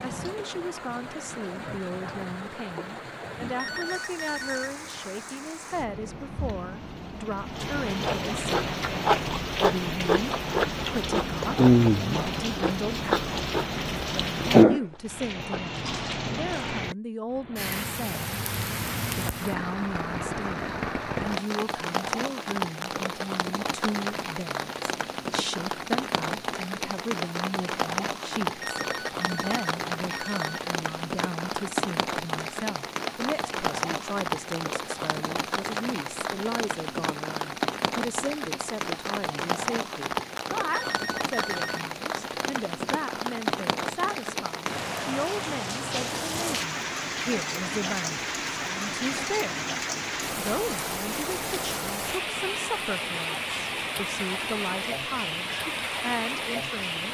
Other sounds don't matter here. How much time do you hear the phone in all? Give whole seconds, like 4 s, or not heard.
4 s.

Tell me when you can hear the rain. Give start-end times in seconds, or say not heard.
0.0-57.0.